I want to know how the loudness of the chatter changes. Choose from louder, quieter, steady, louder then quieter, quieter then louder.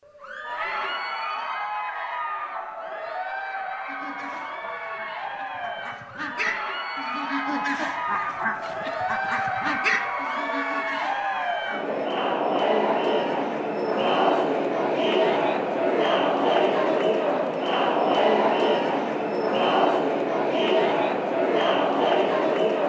louder.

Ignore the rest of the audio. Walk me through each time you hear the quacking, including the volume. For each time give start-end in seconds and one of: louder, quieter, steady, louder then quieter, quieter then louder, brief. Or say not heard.
3.9-11.9 louder then quieter.